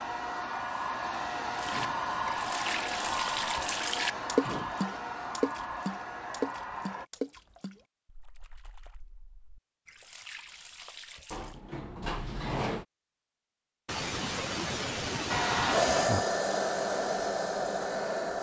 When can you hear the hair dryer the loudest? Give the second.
16 s.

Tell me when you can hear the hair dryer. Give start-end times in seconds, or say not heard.
0.0-7.0, 15.2-18.3.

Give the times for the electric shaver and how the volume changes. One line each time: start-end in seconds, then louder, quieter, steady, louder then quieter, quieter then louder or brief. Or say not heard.
not heard.